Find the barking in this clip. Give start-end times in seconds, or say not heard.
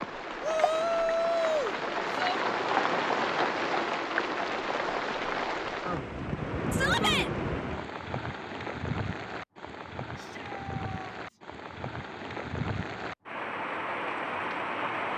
not heard.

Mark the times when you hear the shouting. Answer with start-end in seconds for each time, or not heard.
0.4-2.4, 6.7-7.3, 10.2-11.4.